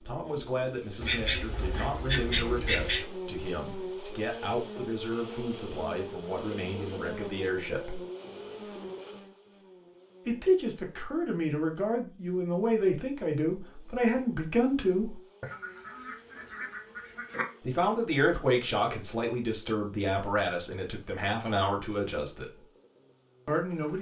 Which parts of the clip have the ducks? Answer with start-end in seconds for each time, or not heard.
1.0-3.0, 15.4-17.4.